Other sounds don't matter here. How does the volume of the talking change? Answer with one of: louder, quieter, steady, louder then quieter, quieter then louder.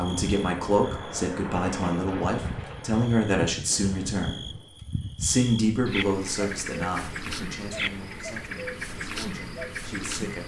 quieter.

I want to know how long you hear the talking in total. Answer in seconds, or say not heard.
10 s.